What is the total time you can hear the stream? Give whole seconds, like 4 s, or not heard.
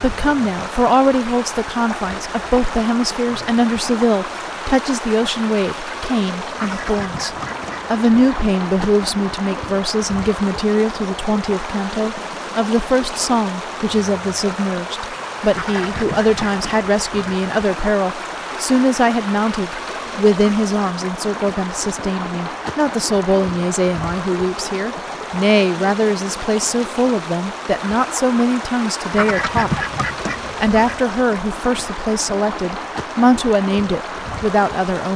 35 s.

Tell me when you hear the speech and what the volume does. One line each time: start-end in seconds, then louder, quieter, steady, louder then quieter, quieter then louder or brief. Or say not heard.
0.0-29.8 steady
30.6-35.1 quieter then louder.